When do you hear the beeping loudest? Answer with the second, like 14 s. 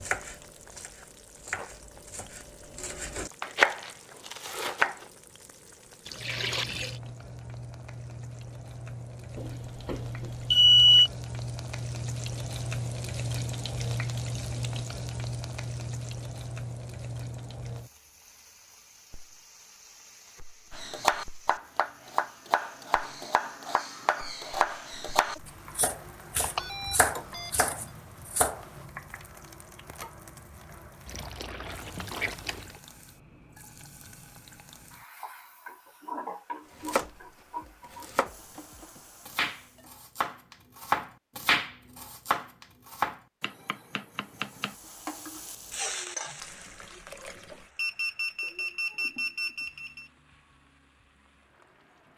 11 s.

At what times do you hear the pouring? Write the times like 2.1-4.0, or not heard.
6.0-7.0, 31.1-32.8, 46.4-47.7.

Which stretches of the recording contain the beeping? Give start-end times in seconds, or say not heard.
9.3-11.1, 26.4-27.5, 47.8-50.1.